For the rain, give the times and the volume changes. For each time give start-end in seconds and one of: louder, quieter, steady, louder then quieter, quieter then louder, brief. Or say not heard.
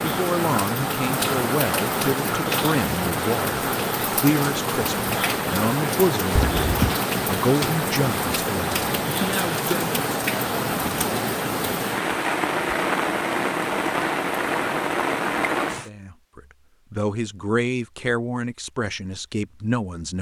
0.0-15.9 steady.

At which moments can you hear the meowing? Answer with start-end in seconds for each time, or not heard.
6.3-7.0.